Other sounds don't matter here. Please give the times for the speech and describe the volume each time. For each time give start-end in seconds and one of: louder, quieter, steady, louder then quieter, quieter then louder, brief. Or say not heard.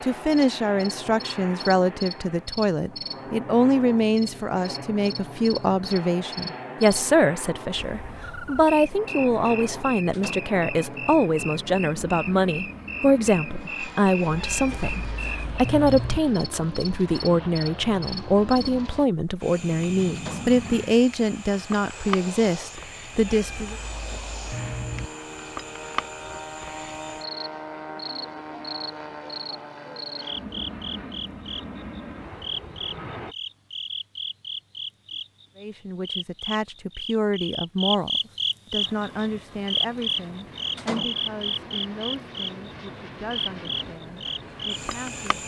0.0-23.8 steady
35.5-45.4 quieter.